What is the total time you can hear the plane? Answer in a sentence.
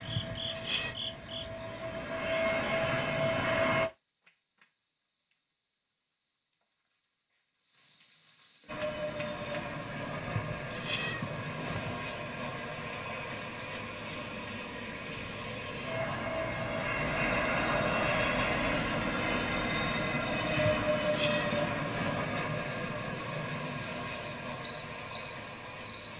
You can hear the plane for 21 seconds altogether.